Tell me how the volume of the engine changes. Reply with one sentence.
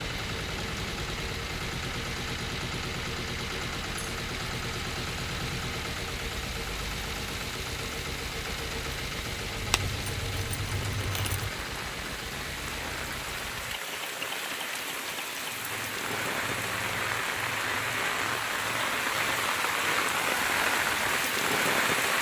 The volume of the engine goes down.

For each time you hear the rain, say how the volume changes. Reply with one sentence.
You can hear the rain from 0.0 to 22.1 s, getting louder.